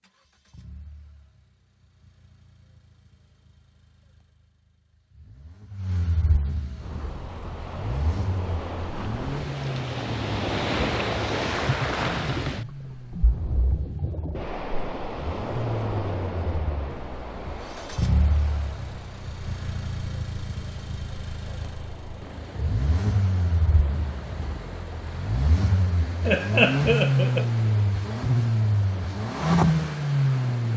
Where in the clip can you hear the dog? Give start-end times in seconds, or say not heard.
not heard.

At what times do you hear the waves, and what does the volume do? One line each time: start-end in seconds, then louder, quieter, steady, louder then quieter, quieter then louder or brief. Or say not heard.
6.8-30.7 quieter.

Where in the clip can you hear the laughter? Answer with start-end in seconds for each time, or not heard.
26.2-27.4.